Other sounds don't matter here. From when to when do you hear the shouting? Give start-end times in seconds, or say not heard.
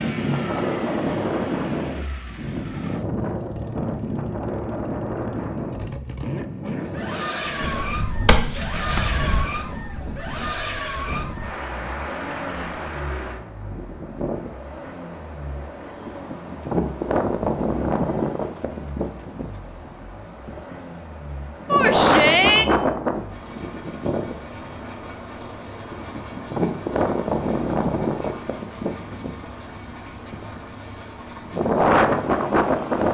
21.6-22.6.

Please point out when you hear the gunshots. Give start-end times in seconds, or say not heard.
7.8-9.4.